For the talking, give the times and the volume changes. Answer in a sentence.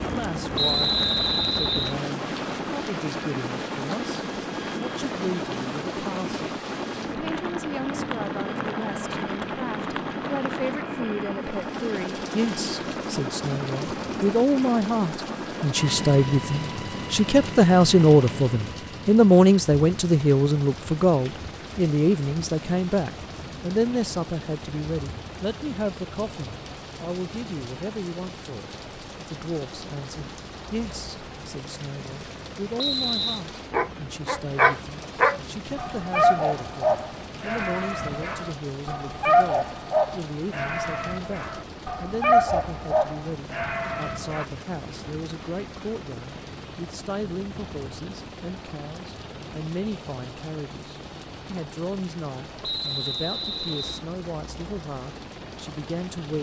The talking can be heard from 0.0 to 56.3 s, getting louder then quieter.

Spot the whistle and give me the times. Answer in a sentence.
You can hear the whistle from 0.6 to 1.9 s, from 32.8 to 33.4 s and from 52.6 to 54.0 s.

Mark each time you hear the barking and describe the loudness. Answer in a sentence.
The barking can be heard from 33.7 to 44.5 s, getting quieter then louder.